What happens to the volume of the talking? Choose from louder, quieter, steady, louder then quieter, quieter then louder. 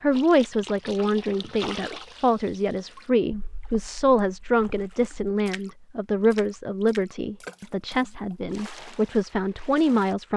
steady.